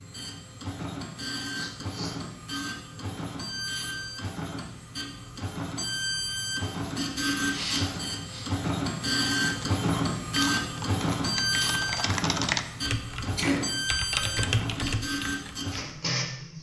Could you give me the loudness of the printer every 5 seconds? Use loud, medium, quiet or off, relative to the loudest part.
medium, loud, loud, loud.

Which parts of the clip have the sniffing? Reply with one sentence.
You can hear the sniffing from 1.6 to 2.1 s, from 7.5 to 8.5 s and from 13.3 to 14.4 s.